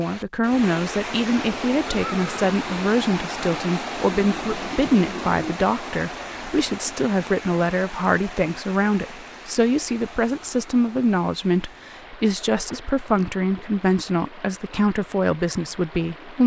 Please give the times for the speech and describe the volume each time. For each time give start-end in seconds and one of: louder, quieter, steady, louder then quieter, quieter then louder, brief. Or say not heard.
0.0-16.4 steady.